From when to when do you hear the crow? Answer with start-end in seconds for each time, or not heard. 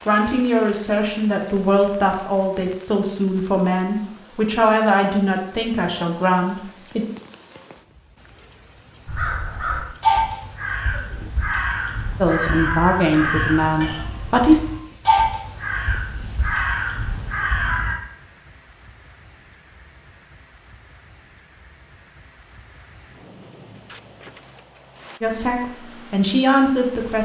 9.1-17.9.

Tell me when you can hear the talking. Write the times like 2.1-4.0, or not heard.
0.1-7.0, 12.2-14.6, 25.2-27.1.